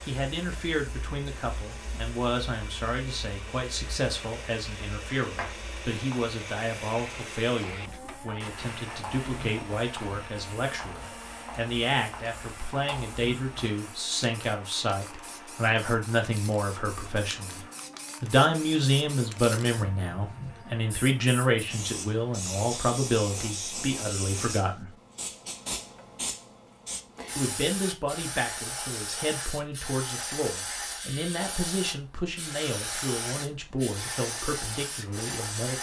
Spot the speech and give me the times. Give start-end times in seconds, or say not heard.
0.0-17.6, 18.2-24.9, 27.4-35.7.